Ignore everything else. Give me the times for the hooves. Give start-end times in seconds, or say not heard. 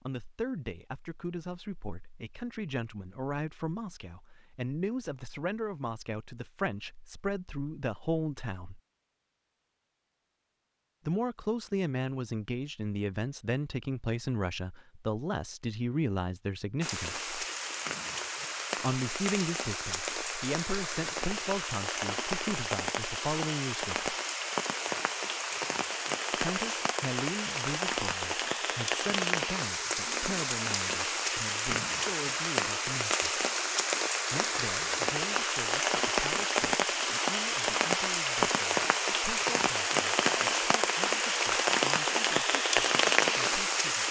not heard.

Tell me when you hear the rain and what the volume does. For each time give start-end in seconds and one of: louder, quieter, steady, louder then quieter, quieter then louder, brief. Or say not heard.
16.8-44.0 louder.